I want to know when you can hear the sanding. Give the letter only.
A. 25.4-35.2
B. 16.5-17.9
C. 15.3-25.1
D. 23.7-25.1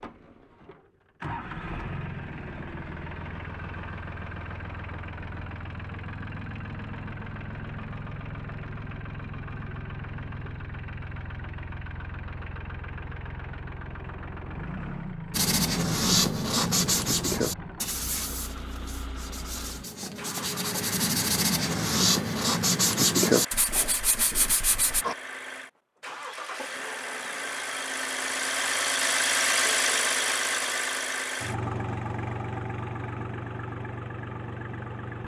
C.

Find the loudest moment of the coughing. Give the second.
25 s.